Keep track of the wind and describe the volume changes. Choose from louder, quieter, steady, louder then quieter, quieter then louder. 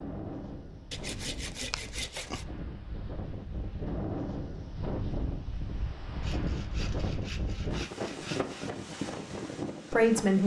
louder.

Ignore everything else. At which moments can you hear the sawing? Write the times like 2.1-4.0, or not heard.
0.9-2.4, 6.2-8.8.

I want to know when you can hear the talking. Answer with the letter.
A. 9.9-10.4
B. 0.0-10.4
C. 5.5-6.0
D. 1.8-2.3
A.